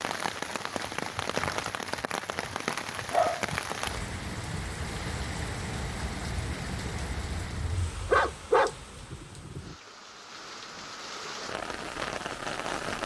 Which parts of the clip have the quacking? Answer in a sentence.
You can't hear the quacking here.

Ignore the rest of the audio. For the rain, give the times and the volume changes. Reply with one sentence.
The rain can be heard from 0.0 to 13.0 s, getting quieter then louder.